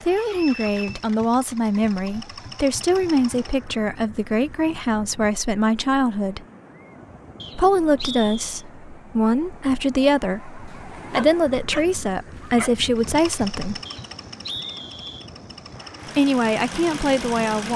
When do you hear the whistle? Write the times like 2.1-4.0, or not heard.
0.2-1.0, 7.4-8.6, 13.8-15.3.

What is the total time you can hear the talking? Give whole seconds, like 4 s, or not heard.
14 s.